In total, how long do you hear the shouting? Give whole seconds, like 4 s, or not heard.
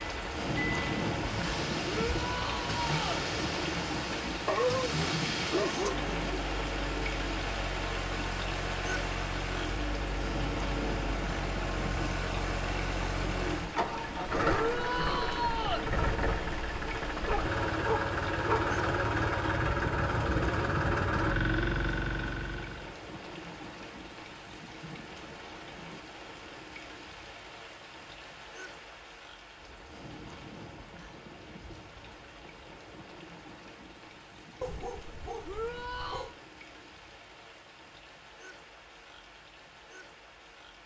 4 s.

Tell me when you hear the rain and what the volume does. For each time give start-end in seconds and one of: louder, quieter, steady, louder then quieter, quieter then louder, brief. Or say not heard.
0.0-40.8 quieter.